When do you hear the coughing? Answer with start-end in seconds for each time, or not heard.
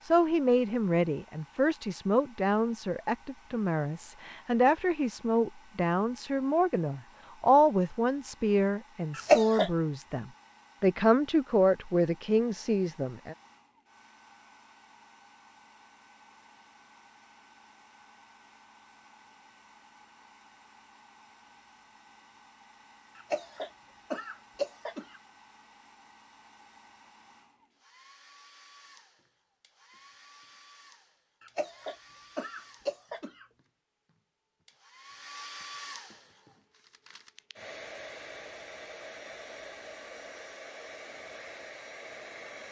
9.2-9.7, 23.1-25.2, 31.4-33.5.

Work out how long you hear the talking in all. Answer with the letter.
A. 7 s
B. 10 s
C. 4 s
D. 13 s
D.